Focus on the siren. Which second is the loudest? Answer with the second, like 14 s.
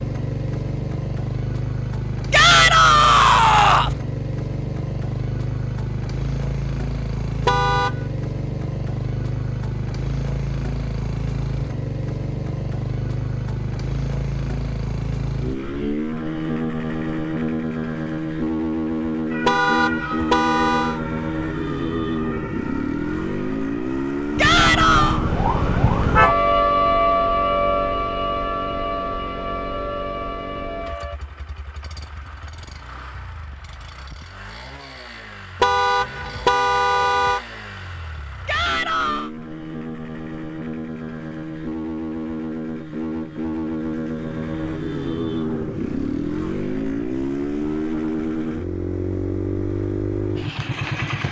27 s.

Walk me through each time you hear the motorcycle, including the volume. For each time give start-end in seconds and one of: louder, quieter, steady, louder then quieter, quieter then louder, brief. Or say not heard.
0.0-51.2 quieter then louder.